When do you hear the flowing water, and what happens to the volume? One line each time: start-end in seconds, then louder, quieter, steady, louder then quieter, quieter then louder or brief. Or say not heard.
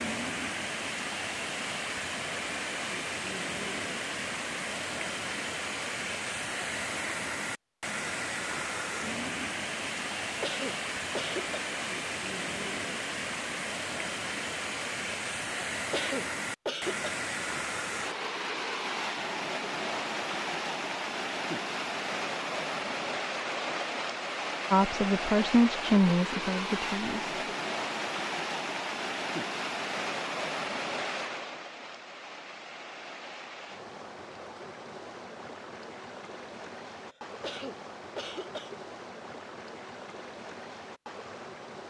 0.0-41.8 quieter.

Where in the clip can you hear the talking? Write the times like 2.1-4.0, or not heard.
24.7-27.4.